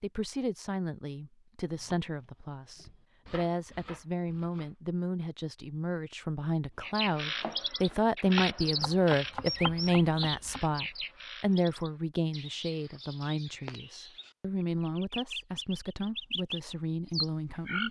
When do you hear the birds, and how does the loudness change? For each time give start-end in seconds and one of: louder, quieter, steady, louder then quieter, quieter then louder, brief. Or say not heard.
6.8-17.8 quieter then louder.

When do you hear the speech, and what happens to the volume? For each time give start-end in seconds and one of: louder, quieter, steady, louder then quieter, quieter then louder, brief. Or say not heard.
0.0-17.8 louder then quieter.